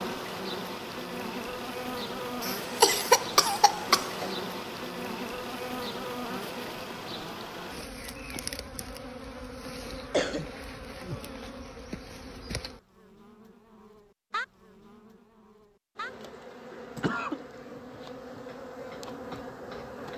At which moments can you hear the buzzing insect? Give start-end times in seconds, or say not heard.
0.0-20.1.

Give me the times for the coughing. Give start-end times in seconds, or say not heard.
2.4-4.3, 10.1-10.5, 16.8-17.4.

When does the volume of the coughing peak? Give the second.
3 s.